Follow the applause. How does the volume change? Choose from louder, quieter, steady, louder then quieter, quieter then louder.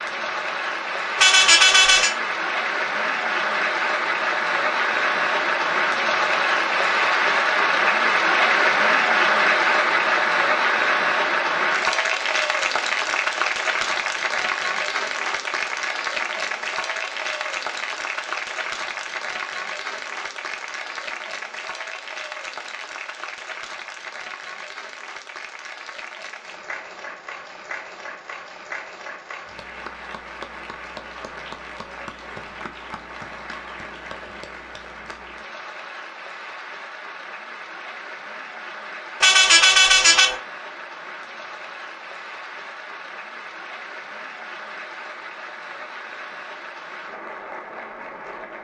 quieter.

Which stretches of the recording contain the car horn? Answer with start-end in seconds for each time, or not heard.
1.1-2.1, 39.2-40.4.